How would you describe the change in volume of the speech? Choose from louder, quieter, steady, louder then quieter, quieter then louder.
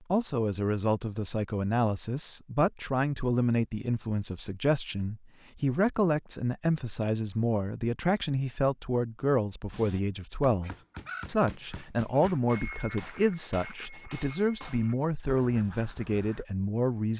steady.